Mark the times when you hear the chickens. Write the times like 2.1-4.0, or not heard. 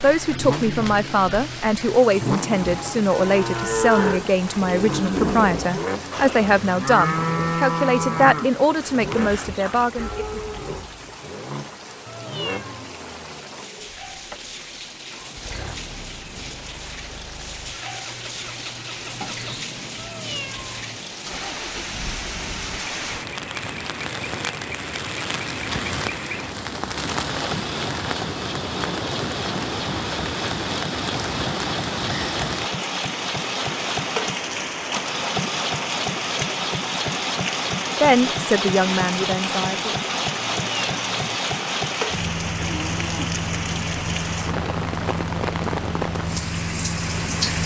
not heard.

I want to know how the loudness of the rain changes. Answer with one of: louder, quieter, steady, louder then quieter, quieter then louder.
louder.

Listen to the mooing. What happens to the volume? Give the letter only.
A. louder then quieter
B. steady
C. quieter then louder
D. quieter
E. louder
D.